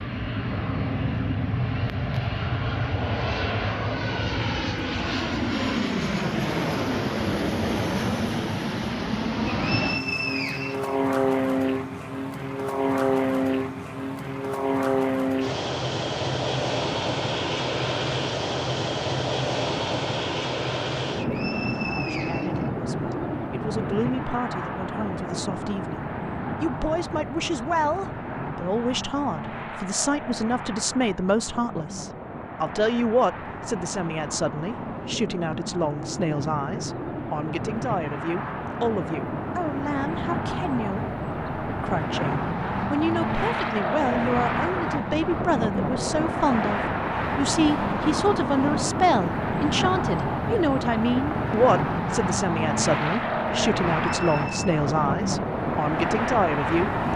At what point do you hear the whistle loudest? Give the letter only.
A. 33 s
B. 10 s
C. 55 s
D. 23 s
B.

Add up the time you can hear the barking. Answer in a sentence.
The barking can't be heard in this clip.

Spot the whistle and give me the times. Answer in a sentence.
You can hear the whistle from 9.5 to 11.0 s, from 21.1 to 23.1 s and from 54.1 to 54.6 s.